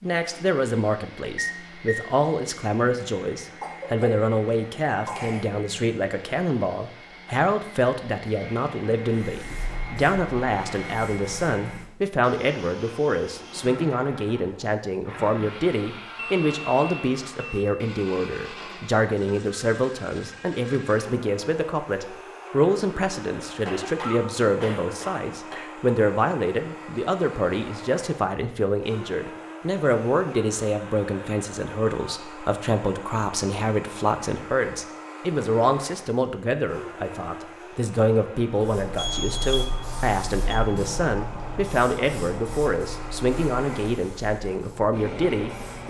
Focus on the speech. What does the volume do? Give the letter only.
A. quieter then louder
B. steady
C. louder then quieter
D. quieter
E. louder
B.